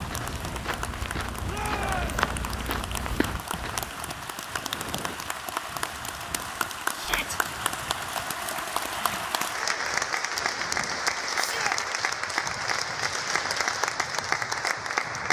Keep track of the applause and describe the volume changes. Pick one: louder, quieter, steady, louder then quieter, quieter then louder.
louder.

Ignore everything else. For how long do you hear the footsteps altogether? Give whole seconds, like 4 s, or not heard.
4 s.